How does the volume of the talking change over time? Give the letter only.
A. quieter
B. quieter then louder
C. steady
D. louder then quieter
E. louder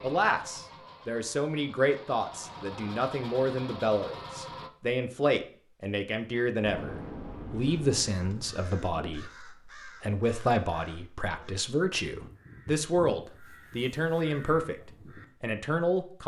C.